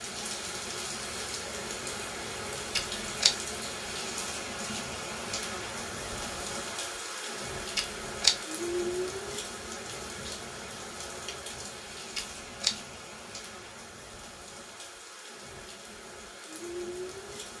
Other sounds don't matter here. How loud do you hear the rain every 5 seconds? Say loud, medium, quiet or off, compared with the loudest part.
loud, loud, medium, medium.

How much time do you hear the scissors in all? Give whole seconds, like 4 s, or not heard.
2 s.